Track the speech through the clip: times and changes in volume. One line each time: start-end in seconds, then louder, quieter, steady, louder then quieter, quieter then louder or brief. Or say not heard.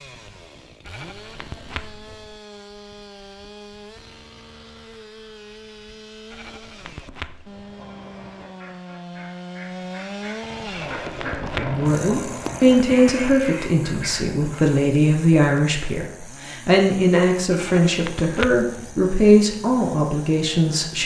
11.6-21.0 steady.